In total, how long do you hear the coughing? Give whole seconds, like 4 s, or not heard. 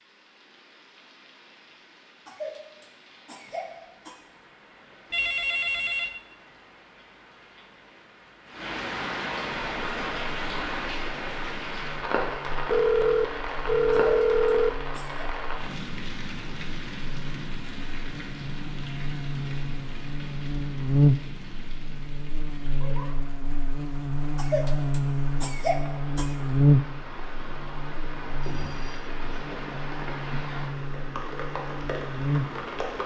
5 s.